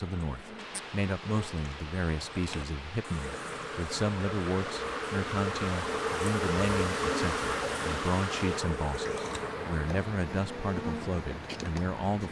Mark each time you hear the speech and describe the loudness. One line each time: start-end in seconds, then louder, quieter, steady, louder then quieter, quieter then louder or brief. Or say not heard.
0.0-12.2 steady.